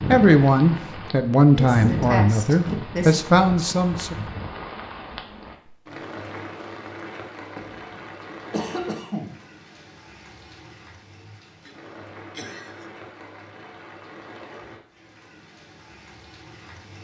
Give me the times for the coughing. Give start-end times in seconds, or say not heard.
1.5-3.3, 7.5-9.3, 11.7-12.9.